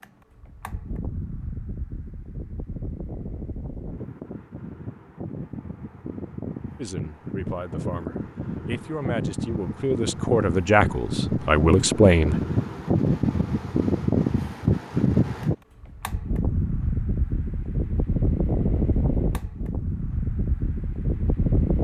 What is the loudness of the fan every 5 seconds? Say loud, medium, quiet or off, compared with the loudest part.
quiet, medium, loud, loud, loud.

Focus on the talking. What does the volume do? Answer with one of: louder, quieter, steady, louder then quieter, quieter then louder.
louder.